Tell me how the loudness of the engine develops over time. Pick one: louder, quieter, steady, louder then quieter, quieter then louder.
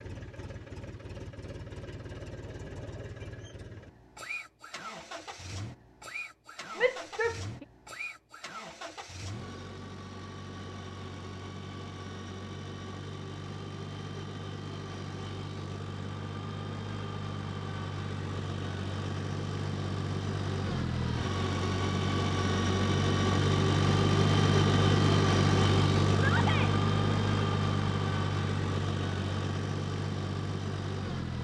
louder.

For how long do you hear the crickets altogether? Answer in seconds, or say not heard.
not heard.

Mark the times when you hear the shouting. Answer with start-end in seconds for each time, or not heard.
6.8-7.3, 26.1-26.8.